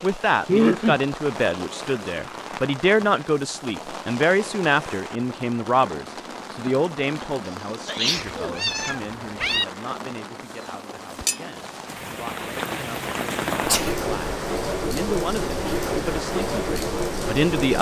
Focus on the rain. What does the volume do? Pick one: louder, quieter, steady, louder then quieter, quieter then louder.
louder.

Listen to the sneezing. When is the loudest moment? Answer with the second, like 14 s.
1 s.